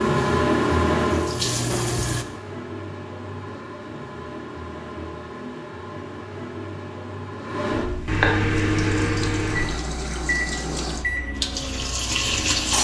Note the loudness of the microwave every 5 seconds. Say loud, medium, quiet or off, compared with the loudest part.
loud, loud, medium.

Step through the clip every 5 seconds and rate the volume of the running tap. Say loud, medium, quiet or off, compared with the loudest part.
loud, medium, loud.